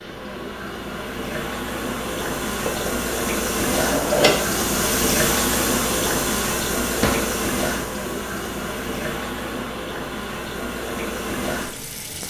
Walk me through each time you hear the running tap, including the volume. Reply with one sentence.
The running tap can be heard from 0.0 to 12.2 s, getting louder then quieter.